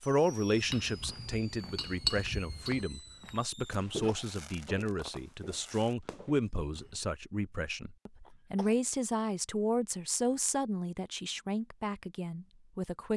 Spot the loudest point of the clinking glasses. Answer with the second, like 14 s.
2 s.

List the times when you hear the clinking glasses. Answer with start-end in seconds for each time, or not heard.
0.7-2.9.